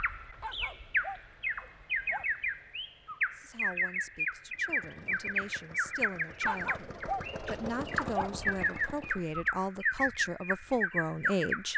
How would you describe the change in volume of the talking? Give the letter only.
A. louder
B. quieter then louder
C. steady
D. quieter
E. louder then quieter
A.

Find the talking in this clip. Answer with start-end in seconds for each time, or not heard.
3.3-11.7.